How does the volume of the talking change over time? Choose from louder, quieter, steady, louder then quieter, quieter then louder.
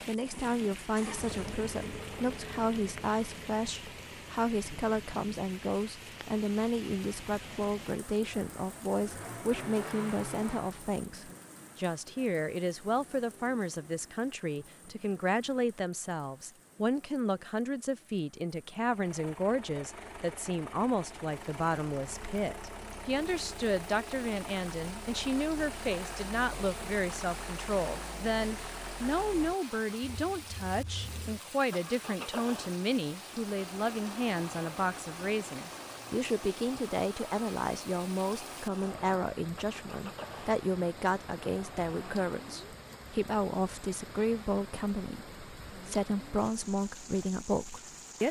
steady.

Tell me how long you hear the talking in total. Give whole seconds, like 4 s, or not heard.
48 s.